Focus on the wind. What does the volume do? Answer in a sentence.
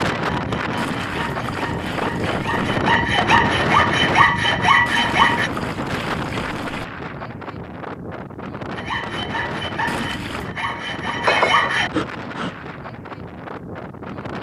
The volume of the wind goes down.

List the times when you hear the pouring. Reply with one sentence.
The pouring can be heard from 0.8 to 2.8 s, from 4.8 to 6.8 s and from 9.8 to 10.5 s.